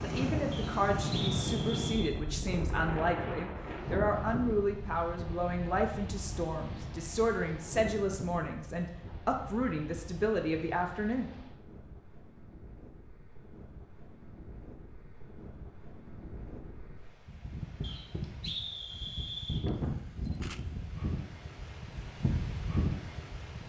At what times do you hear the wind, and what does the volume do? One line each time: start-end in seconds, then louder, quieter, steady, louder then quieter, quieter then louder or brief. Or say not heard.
0.0-23.6 quieter then louder.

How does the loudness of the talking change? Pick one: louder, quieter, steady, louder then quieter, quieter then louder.
steady.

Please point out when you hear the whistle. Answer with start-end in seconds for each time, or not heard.
0.5-2.1, 17.8-19.6.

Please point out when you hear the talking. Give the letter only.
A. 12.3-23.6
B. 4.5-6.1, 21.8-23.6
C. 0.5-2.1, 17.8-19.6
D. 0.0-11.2
D.